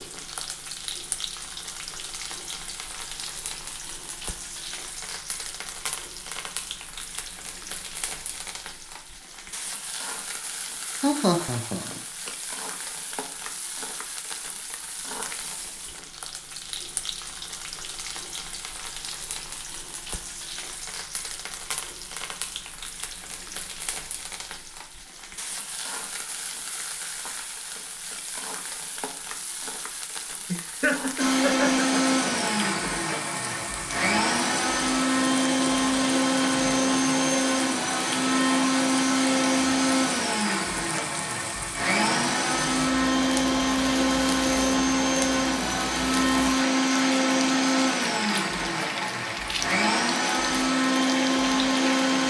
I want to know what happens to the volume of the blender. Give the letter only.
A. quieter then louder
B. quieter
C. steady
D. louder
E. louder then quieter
C.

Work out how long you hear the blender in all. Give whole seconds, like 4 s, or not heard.
21 s.